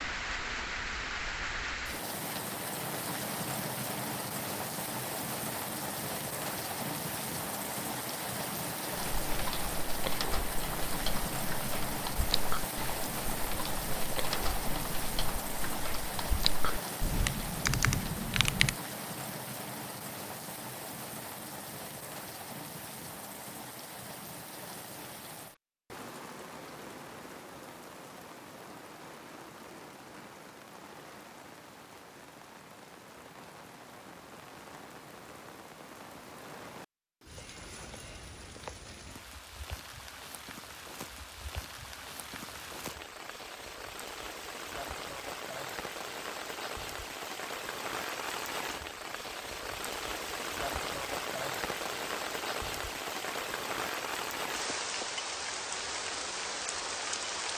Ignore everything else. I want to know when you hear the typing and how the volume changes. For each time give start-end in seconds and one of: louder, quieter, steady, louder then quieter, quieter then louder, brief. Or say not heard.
8.9-18.8 louder.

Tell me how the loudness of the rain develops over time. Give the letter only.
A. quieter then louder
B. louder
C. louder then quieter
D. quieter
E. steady
A.